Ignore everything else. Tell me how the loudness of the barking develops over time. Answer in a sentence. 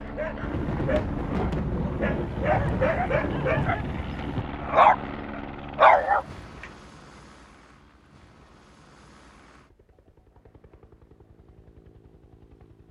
The volume of the barking goes up.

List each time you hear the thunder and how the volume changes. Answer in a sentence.
The thunder can be heard from 0.4 to 4.5 s, at a steady volume.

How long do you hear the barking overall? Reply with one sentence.
You can hear the barking for 7 seconds altogether.